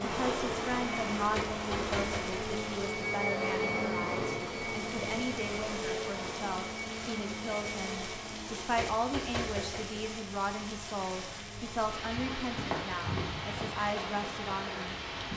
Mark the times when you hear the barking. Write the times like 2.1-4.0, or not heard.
not heard.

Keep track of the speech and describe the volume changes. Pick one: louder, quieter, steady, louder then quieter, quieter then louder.
steady.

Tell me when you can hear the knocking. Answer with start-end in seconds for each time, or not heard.
1.4-2.4, 8.8-9.9.